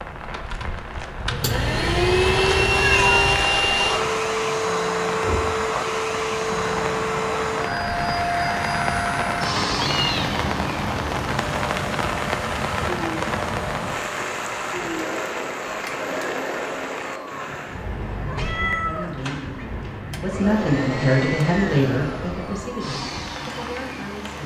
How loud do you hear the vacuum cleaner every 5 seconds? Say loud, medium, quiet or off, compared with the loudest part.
loud, loud, medium, medium, medium.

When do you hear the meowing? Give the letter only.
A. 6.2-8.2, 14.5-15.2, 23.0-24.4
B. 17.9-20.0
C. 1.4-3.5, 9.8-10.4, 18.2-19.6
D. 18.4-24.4
C.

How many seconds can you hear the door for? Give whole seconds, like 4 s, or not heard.
2 s.